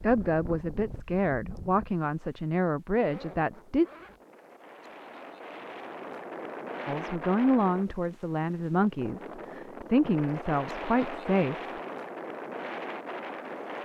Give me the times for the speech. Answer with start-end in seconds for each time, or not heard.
0.0-3.9, 6.8-11.7.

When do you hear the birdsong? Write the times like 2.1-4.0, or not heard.
not heard.